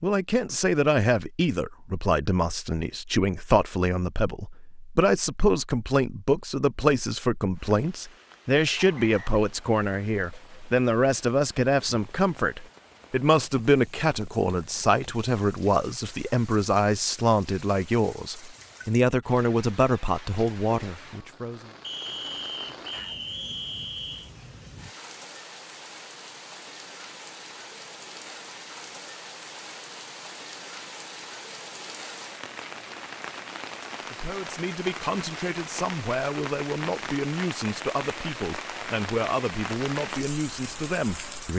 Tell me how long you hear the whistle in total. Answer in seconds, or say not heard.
3 s.